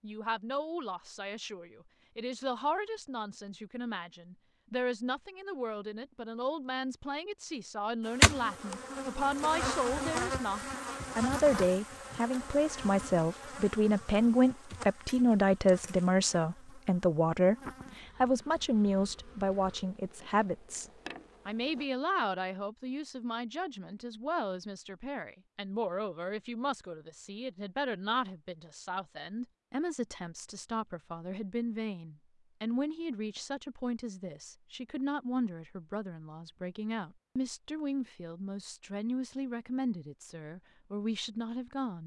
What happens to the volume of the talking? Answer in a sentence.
The loudness of the talking goes up, then down.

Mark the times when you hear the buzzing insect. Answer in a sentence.
You can hear the buzzing insect from 8.1 to 21.9 s.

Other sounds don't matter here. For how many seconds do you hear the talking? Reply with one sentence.
You can hear the talking for 42 seconds altogether.